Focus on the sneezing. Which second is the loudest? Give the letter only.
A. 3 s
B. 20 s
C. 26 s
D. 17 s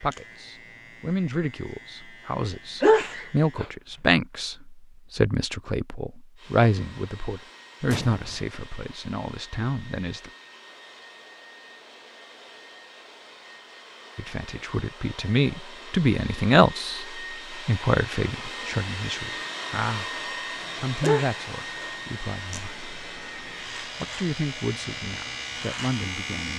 A.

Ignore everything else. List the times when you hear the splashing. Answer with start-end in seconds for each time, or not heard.
not heard.